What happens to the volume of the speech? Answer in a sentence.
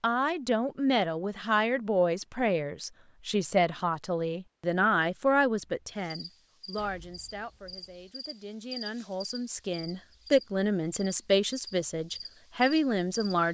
The loudness of the speech goes down, then up.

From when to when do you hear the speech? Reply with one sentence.
The speech can be heard from 0.0 to 13.4 s.